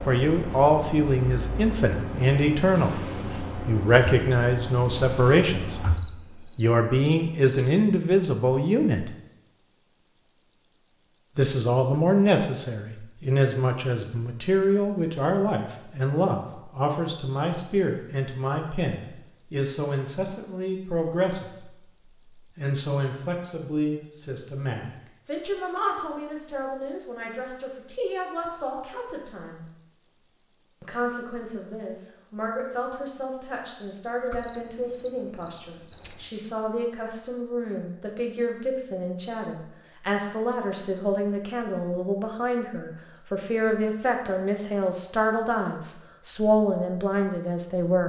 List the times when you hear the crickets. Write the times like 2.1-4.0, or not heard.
0.0-36.5.